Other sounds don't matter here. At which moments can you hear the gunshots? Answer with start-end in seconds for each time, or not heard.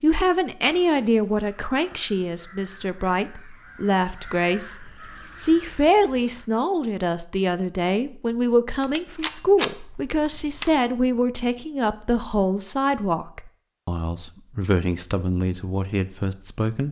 8.8-10.8.